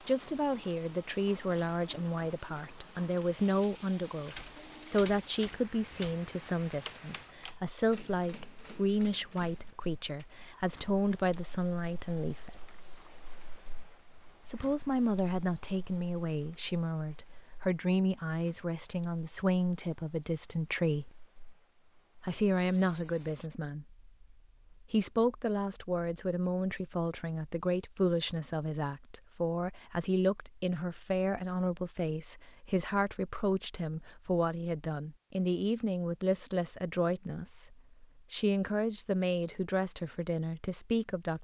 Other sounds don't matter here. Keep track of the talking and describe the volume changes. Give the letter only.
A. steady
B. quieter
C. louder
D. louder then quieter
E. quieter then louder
A.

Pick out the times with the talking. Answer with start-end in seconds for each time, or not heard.
0.1-12.7, 14.4-21.1, 22.2-41.3.